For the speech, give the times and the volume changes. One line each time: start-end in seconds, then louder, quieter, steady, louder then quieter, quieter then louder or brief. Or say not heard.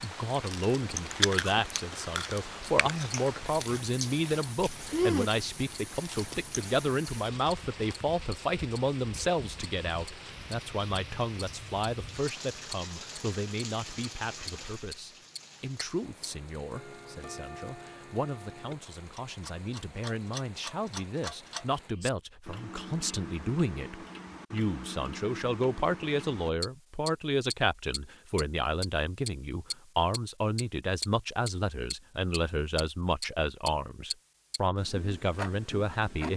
0.0-36.3 quieter then louder.